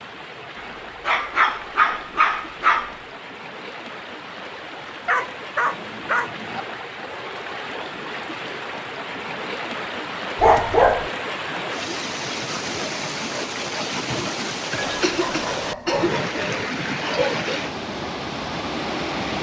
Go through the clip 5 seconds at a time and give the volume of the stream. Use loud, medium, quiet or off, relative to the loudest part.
medium, medium, loud, loud.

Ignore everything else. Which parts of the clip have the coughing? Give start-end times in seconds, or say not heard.
14.8-16.1.